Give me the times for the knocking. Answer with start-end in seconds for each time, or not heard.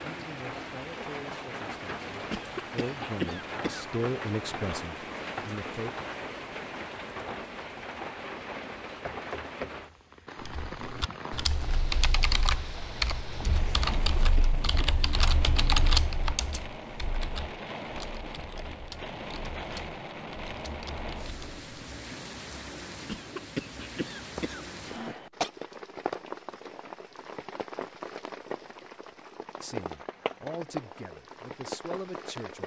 9.1-9.8.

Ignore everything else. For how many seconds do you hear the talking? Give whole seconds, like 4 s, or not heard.
9 s.